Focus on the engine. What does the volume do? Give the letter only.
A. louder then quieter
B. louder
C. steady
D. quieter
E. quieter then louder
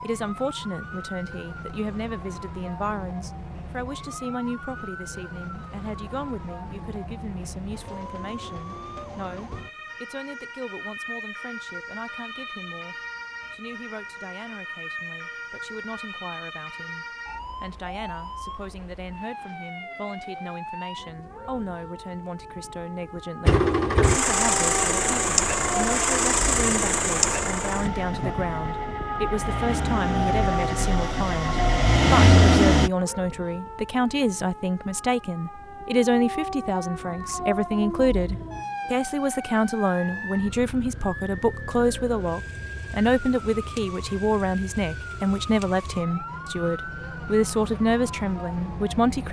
E.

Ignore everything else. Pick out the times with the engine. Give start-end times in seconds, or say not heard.
23.4-32.9.